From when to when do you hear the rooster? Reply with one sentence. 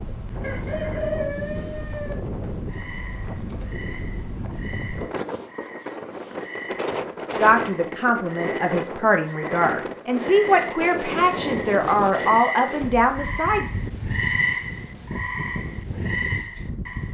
The rooster can be heard from 0.4 to 2.1 s.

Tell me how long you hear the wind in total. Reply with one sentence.
The wind can be heard for 17 seconds in total.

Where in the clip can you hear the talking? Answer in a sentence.
The talking can be heard from 7.4 to 13.7 s.